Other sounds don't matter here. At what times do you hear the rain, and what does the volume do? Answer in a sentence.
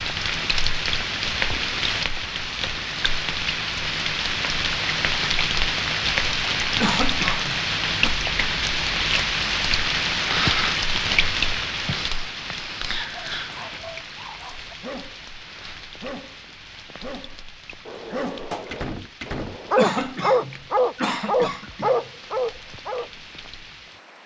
You can hear the rain from 0.0 to 24.2 s, getting quieter.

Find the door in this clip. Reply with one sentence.
You can hear the door from 17.9 to 19.8 s.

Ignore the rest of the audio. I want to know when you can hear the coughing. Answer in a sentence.
You can hear the coughing from 6.8 to 8.2 s and from 19.8 to 22.1 s.